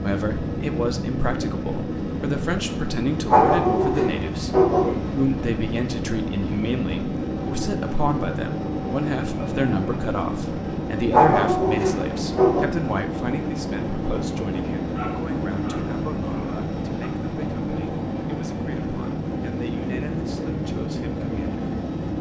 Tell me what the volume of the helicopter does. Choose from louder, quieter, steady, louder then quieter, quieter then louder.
steady.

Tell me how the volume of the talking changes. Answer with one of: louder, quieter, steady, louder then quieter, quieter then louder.
quieter.